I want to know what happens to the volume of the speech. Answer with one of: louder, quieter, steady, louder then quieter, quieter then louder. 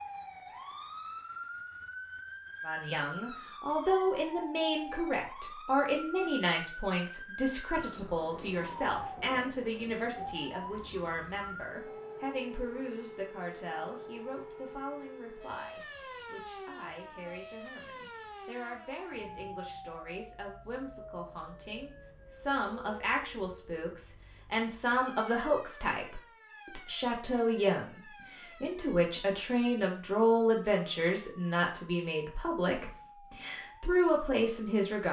quieter then louder.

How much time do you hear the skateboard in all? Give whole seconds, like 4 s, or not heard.
not heard.